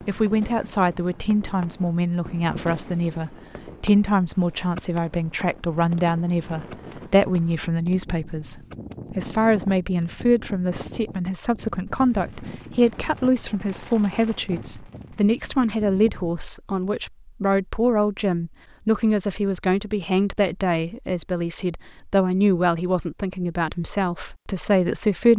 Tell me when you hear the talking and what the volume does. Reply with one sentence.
You can hear the talking from 0.1 to 25.3 s, at a steady volume.